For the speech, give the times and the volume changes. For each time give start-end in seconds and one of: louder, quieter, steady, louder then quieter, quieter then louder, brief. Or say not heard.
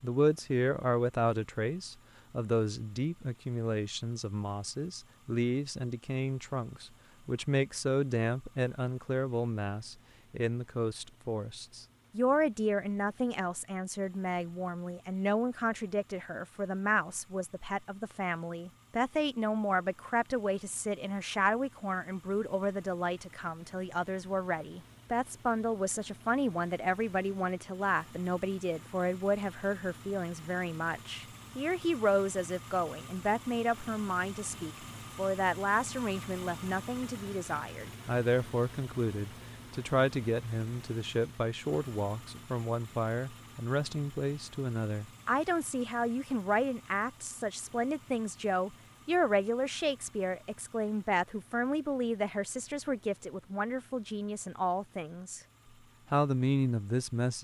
0.0-55.4 steady
56.1-57.3 brief.